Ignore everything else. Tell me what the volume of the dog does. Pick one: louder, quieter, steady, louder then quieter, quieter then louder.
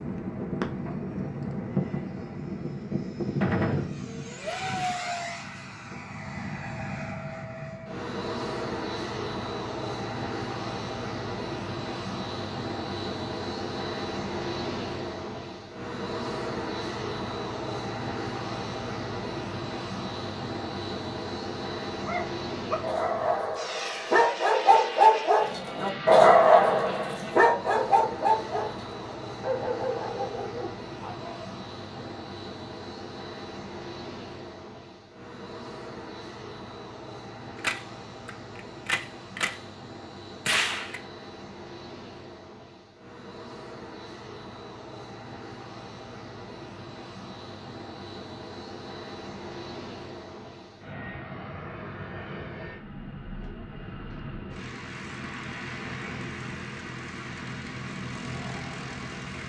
louder then quieter.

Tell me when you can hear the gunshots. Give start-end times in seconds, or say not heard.
3.4-3.9, 37.5-39.6, 40.5-41.0.